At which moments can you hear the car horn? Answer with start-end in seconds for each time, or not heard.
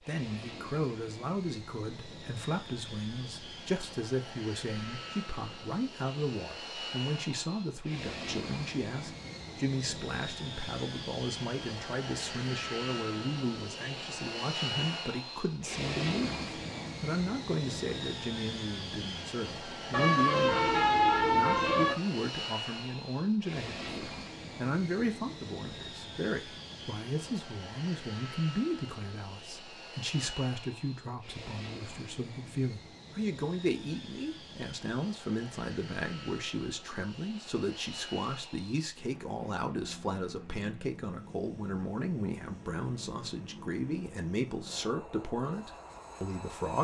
19.9-21.9.